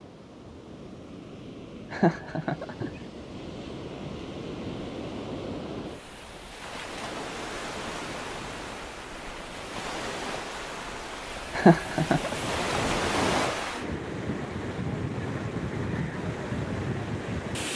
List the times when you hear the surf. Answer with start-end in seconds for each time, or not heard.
0.0-17.7.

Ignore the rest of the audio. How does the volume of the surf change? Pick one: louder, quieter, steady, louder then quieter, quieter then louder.
louder.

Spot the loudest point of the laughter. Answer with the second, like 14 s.
12 s.